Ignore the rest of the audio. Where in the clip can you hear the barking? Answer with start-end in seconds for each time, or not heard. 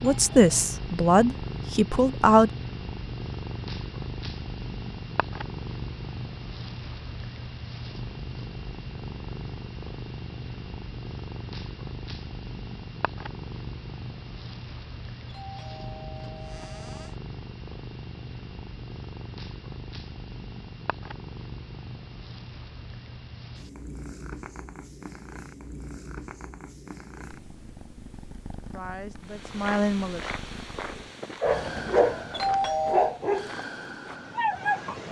31.4-35.0.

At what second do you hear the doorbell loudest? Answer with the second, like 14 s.
33 s.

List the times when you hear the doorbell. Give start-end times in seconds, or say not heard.
0.0-0.5, 15.3-17.1, 32.3-33.1.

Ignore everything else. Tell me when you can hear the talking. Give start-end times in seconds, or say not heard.
0.0-2.5, 28.7-30.3.